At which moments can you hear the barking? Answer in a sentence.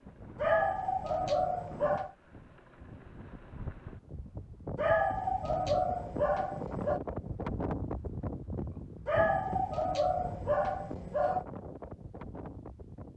The barking can be heard from 0.3 to 2.1 s, from 4.8 to 7.0 s and from 9.1 to 11.4 s.